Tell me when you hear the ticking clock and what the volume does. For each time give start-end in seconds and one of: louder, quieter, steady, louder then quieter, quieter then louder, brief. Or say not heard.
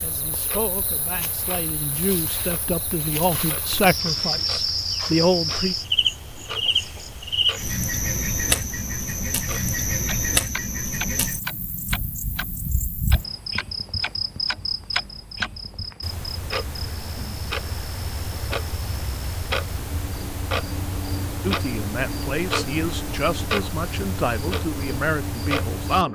0.0-26.1 louder.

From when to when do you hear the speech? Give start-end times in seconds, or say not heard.
0.0-5.8, 21.4-26.1.